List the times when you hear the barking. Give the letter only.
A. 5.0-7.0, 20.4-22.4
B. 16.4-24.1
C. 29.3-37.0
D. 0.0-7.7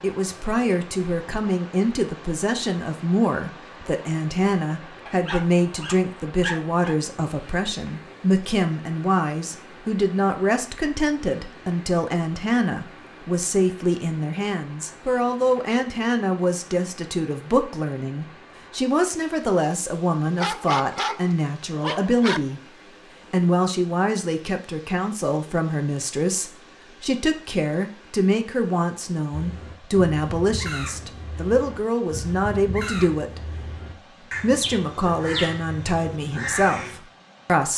A.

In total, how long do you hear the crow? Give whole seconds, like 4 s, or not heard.
8 s.